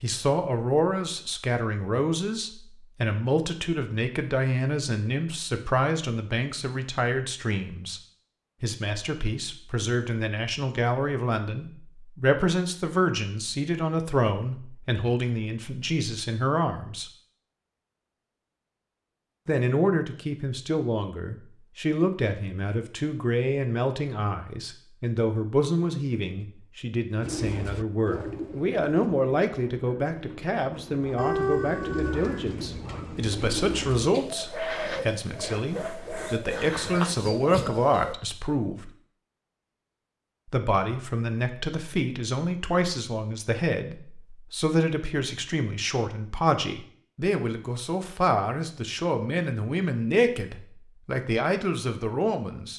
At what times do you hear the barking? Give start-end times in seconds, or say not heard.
31.1-32.5.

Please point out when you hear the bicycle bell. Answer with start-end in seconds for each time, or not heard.
not heard.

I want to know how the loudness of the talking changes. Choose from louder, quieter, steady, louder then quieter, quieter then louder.
steady.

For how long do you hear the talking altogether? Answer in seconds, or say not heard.
48 s.